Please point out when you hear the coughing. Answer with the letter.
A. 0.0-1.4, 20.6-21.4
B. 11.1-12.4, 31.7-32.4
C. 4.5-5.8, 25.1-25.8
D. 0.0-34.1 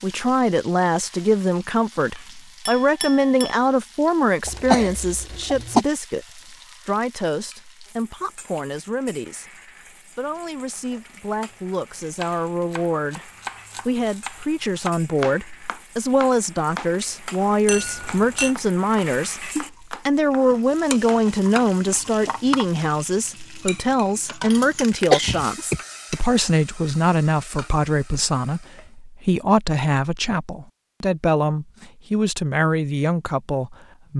C.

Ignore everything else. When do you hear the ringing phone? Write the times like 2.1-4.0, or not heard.
not heard.